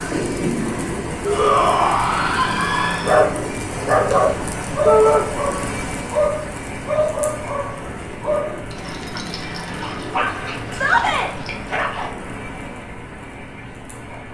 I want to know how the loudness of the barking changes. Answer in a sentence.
The loudness of the barking goes down.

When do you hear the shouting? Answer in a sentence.
The shouting can be heard from 1.2 to 3.2 s, from 4.8 to 5.2 s and from 10.7 to 11.3 s.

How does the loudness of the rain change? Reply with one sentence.
The loudness of the rain goes down.